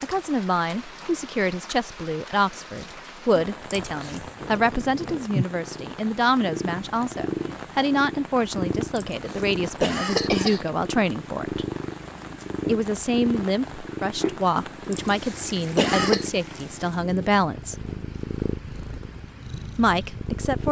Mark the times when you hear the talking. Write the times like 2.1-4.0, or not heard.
0.0-11.7, 12.7-17.8, 19.8-20.6.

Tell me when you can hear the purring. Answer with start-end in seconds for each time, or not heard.
4.4-20.6.